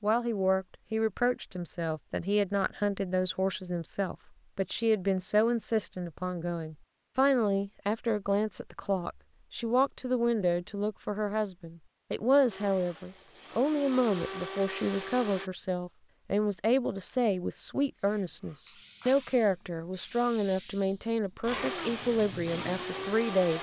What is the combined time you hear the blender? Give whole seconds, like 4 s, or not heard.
5 s.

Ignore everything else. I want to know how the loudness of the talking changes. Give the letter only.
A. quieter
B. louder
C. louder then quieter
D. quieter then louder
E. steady
E.